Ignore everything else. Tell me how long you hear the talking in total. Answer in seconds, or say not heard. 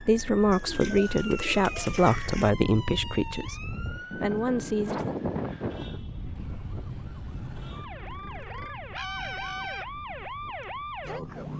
5 s.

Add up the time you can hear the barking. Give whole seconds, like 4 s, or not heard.
not heard.